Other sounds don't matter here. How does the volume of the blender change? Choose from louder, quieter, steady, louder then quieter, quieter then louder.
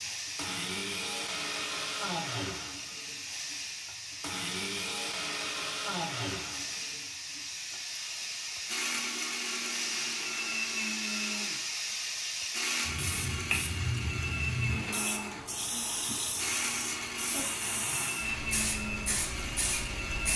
steady.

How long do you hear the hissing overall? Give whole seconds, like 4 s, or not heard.
20 s.